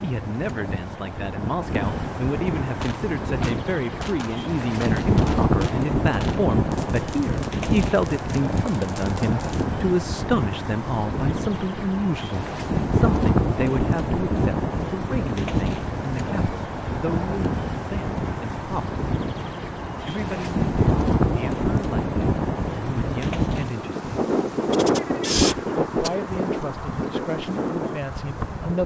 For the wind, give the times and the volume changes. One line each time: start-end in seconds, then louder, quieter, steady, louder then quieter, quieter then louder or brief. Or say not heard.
0.0-28.8 steady.